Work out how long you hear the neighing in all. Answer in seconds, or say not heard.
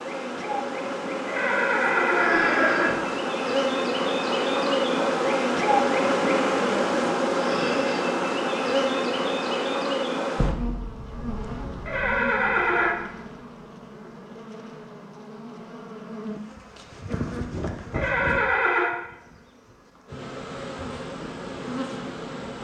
4 s.